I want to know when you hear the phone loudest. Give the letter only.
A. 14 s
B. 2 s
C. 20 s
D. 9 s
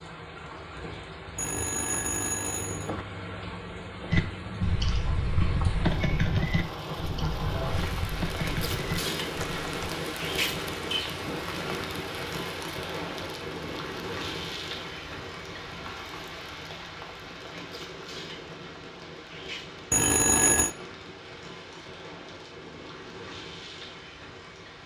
C.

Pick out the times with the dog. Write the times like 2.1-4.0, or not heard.
not heard.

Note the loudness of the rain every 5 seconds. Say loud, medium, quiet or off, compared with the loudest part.
medium, loud, loud, medium, medium.